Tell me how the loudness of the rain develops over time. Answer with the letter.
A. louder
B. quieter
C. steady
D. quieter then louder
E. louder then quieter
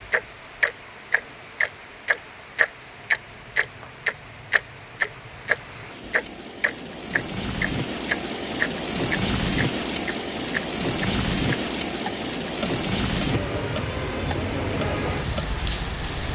A.